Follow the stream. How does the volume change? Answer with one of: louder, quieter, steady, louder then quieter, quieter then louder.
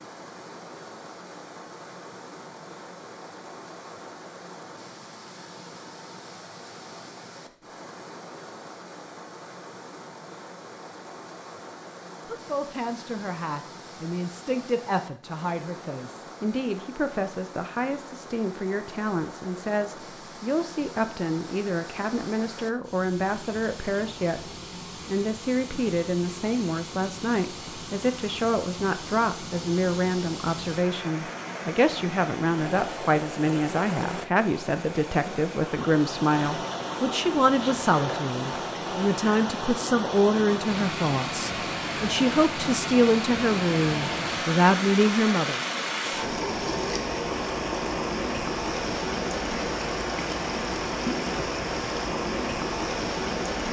louder.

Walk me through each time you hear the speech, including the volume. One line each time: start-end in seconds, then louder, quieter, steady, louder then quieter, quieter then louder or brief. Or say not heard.
12.2-45.6 louder.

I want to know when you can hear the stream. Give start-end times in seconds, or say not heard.
0.0-53.6.